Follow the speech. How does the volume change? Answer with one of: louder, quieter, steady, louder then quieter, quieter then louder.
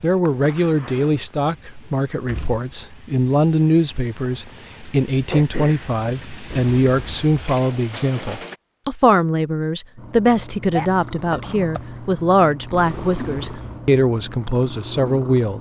steady.